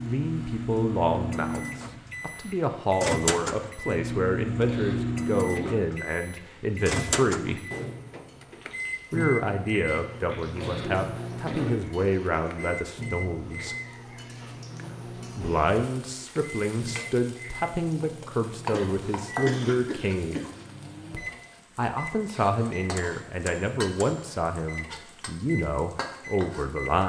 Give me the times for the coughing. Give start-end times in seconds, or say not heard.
4.7-5.8, 10.6-11.9, 18.7-20.6.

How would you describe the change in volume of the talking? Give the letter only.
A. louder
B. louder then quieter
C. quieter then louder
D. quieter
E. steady
E.